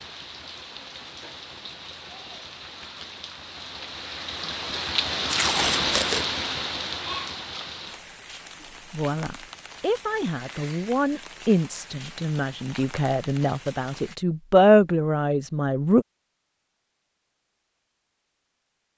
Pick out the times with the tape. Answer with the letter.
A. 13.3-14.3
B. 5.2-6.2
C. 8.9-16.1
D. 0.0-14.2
B.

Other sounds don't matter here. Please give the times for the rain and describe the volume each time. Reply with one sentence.
The rain can be heard from 0.0 to 14.2 s, getting louder then quieter.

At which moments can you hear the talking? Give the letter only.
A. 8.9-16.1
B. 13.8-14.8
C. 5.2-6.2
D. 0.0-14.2
A.